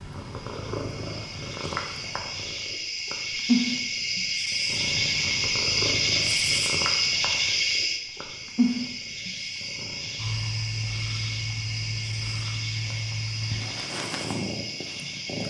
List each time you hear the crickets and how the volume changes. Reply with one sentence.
You can hear the crickets from 0.0 to 15.4 s, getting louder then quieter.